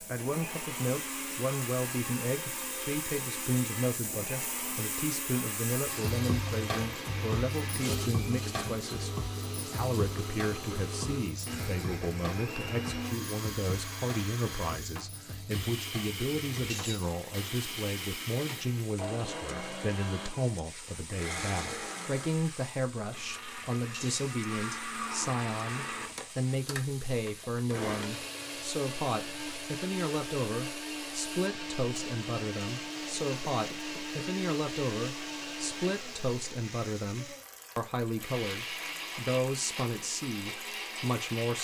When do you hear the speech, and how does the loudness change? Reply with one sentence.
The speech can be heard from 0.0 to 41.6 s, at a steady volume.